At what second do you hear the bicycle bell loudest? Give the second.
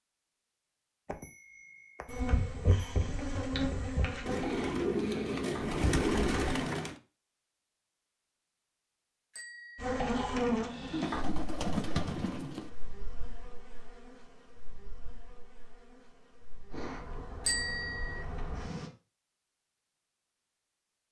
18 s.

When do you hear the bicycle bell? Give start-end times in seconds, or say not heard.
1.1-3.0, 9.3-9.9, 17.4-18.2.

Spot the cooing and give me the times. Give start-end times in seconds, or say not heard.
4.2-7.0, 10.9-12.7.